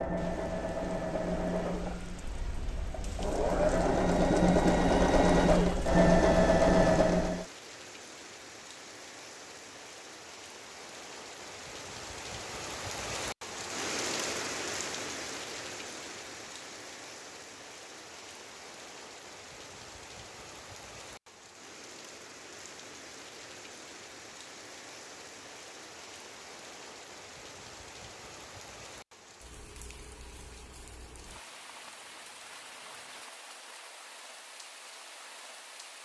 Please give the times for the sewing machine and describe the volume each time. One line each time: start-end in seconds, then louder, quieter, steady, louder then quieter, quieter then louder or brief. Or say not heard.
0.0-7.5 quieter then louder.